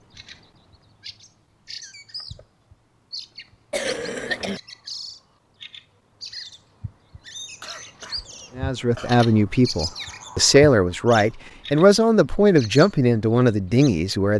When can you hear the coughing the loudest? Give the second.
4 s.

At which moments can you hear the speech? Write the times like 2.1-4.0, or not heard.
8.6-14.3.